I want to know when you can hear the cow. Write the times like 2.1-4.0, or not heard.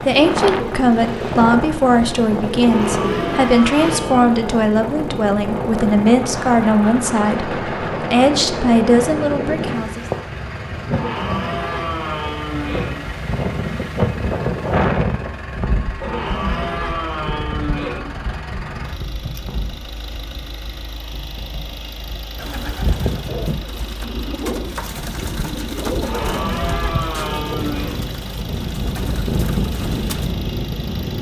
2.6-4.3, 10.9-12.9, 16.0-18.0, 26.0-27.9.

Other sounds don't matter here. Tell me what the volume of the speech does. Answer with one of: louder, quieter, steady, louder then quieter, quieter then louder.
steady.